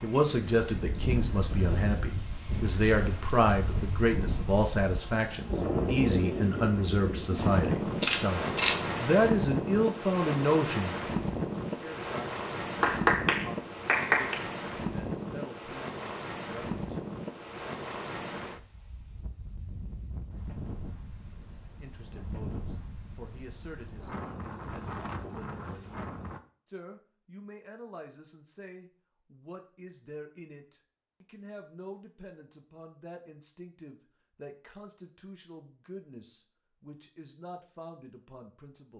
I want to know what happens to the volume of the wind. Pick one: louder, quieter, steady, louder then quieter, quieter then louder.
louder then quieter.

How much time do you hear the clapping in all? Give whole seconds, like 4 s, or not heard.
2 s.